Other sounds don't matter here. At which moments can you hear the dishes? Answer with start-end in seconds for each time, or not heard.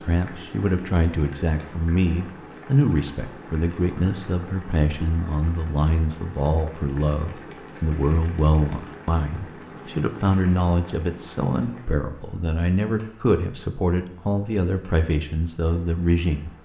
not heard.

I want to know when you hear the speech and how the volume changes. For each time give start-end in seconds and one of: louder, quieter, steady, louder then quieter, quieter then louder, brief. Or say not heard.
0.0-16.5 steady.